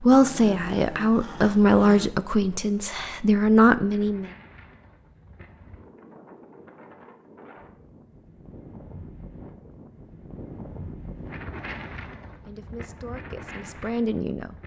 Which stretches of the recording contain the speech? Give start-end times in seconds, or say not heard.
0.0-4.3, 12.4-14.6.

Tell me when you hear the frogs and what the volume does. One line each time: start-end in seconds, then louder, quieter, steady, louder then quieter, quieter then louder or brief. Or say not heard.
not heard.